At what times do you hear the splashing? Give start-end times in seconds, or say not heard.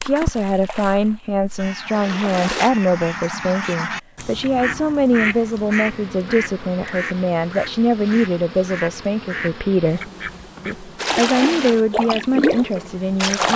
0.0-2.7, 10.9-13.5.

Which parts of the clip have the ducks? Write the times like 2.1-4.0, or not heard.
1.6-10.8.